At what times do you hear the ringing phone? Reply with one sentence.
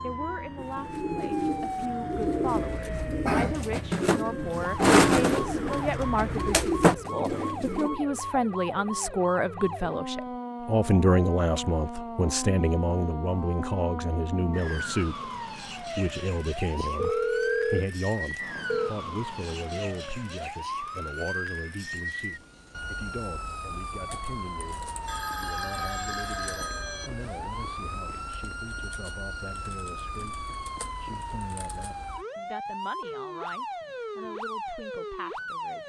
The ringing phone can be heard from 7.0 to 8.1 s, from 16.9 to 18.9 s and from 25.1 to 27.1 s.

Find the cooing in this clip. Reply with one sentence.
The cooing can be heard from 0.6 to 7.9 s.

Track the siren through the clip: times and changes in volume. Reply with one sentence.
You can hear the siren from 0.0 to 35.8 s, at a steady volume.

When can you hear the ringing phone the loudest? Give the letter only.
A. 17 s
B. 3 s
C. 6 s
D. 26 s
A.